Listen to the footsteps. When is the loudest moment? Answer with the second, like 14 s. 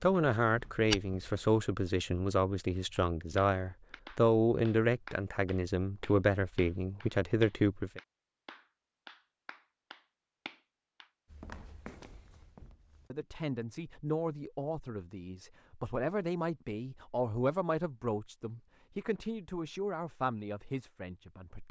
1 s.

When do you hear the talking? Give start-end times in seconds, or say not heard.
0.0-8.0, 13.1-21.6.